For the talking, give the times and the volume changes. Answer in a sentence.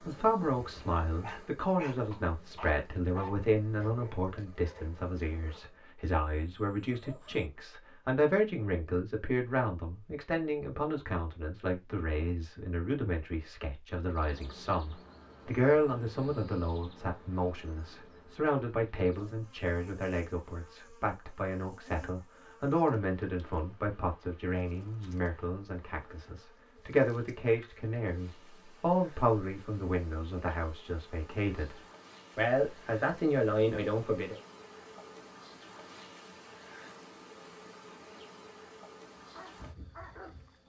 The talking can be heard from 0.0 to 34.4 s, at a steady volume.